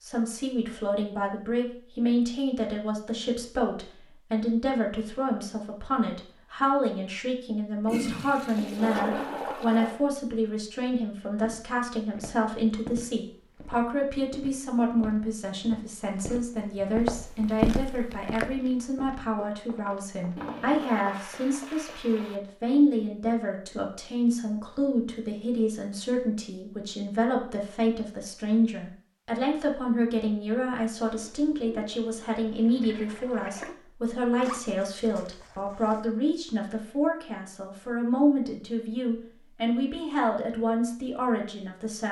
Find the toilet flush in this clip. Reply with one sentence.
The toilet flush can be heard from 7.8 to 10.0 s, from 20.4 to 22.4 s and from 31.1 to 33.8 s.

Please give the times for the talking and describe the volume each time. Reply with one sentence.
The talking can be heard from 0.0 to 42.0 s, at a steady volume.